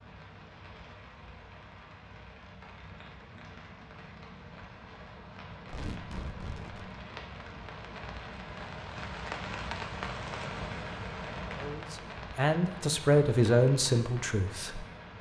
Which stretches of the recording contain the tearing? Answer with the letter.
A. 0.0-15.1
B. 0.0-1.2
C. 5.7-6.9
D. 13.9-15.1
C.